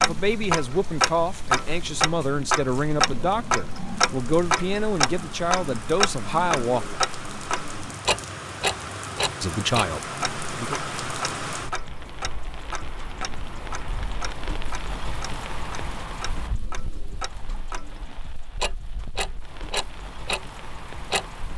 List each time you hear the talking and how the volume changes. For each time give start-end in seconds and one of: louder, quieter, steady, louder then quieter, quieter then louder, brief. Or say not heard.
0.0-7.0 steady
9.4-10.8 brief.